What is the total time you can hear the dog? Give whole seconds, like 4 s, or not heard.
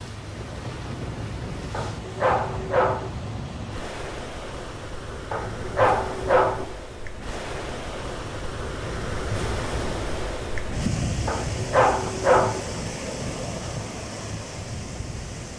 4 s.